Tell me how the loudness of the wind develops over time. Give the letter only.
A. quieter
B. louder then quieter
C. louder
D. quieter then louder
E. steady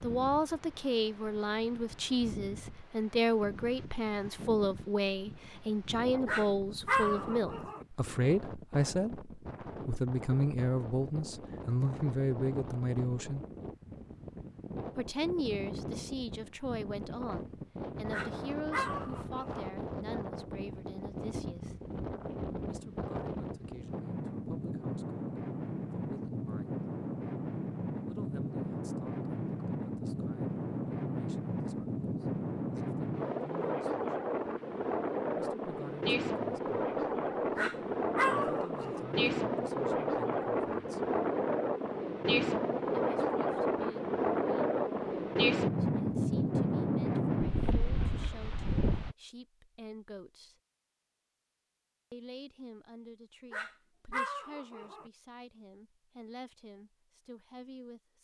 C.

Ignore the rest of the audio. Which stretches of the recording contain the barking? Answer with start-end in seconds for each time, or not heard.
6.2-7.8, 18.1-19.6, 37.5-39.0, 53.5-55.0.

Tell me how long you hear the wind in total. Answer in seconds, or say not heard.
49 s.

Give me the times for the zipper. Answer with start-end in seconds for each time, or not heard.
not heard.